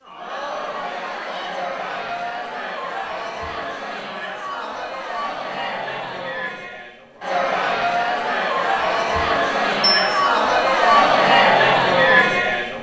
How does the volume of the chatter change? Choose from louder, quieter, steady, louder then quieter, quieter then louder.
louder.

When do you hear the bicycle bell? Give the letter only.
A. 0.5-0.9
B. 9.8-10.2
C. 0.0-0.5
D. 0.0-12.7
B.